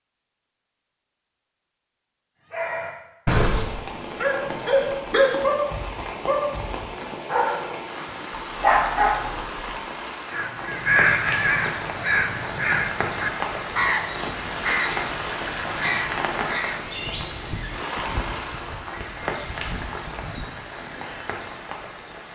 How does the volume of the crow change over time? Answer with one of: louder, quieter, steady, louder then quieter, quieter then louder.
quieter.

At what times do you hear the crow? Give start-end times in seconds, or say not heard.
10.3-21.6.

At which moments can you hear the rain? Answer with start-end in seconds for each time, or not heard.
3.5-22.3.